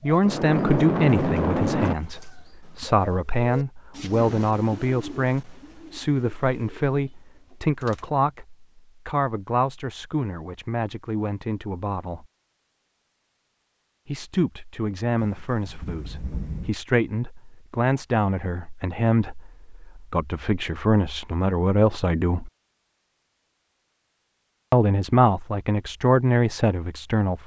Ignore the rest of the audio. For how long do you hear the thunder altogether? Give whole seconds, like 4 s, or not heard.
3 s.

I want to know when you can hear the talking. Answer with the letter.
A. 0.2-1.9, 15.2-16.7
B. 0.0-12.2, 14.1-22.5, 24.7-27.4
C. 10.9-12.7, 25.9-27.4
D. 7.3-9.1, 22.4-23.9
B.